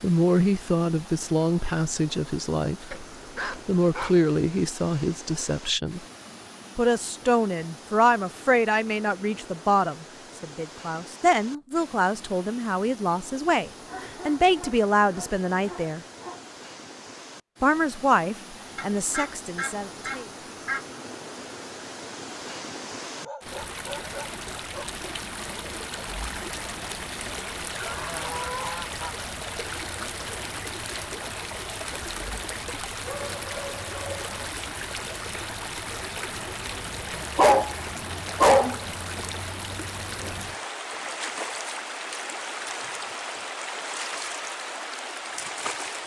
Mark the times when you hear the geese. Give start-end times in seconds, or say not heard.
18.8-20.8, 27.7-29.2.